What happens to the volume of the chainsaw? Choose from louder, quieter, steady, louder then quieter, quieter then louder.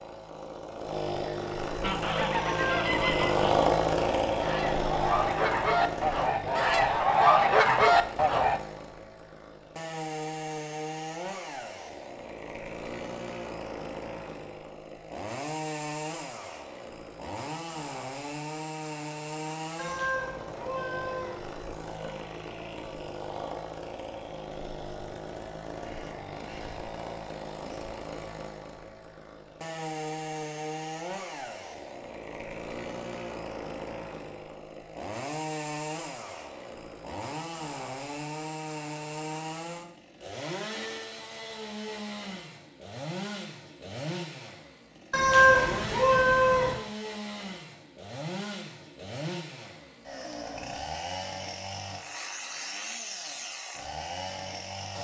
quieter.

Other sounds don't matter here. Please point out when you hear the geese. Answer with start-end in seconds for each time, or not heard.
1.8-8.6.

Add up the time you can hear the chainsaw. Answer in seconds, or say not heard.
55 s.